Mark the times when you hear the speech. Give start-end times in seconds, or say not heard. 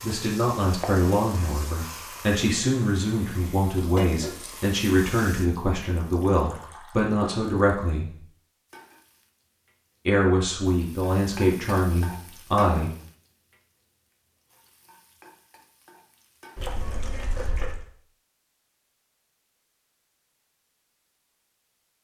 0.0-8.1, 10.1-12.9.